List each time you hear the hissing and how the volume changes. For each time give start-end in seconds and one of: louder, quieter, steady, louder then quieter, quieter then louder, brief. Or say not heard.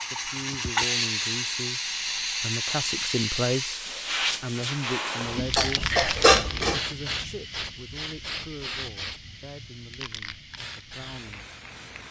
0.0-12.0 quieter.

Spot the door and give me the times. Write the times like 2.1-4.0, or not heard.
not heard.